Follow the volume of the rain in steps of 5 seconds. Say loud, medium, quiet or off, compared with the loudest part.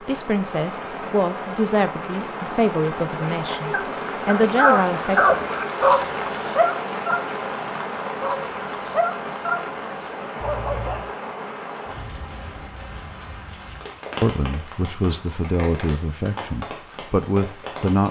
loud, loud, medium, medium.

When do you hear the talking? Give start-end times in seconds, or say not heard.
0.0-5.3, 14.2-18.0.